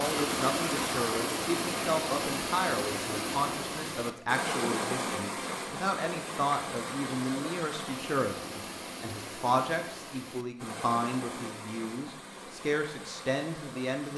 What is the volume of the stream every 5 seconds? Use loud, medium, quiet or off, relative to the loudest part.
loud, medium, medium.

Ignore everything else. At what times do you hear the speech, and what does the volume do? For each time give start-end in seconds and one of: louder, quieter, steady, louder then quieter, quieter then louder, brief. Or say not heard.
0.0-14.1 steady.